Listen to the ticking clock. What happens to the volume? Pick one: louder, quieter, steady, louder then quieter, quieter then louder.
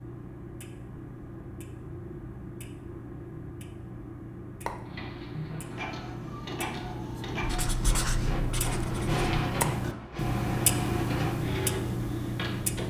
louder.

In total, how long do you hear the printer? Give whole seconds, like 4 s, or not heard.
8 s.